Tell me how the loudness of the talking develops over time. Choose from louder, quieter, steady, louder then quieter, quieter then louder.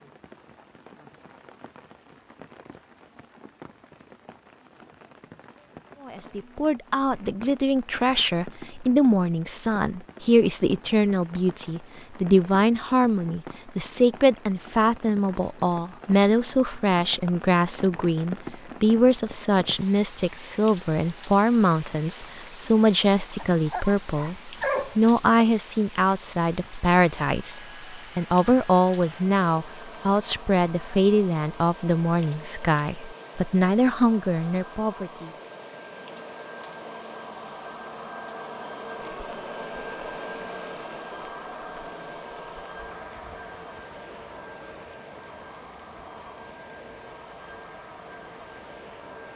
steady.